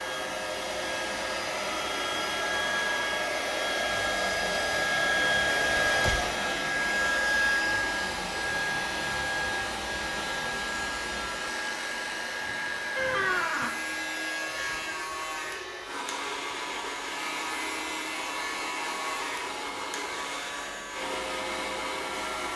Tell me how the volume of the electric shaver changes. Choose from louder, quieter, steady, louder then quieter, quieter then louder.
steady.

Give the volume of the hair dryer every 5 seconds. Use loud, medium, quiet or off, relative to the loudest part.
loud, loud, medium, medium, medium.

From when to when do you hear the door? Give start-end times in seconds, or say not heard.
5.8-6.2, 12.9-13.8.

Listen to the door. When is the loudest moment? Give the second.
13 s.